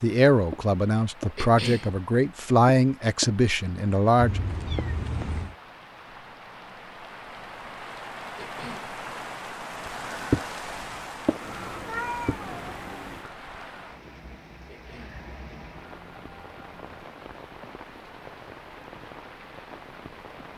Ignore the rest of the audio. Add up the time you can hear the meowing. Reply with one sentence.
You can hear the meowing for 3 seconds altogether.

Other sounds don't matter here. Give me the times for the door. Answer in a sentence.
You can't hear the door here.